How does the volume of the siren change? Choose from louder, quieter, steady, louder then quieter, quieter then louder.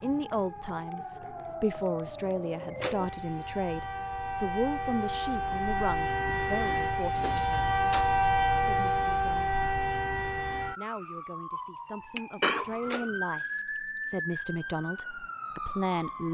louder then quieter.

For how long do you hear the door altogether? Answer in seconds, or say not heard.
2 s.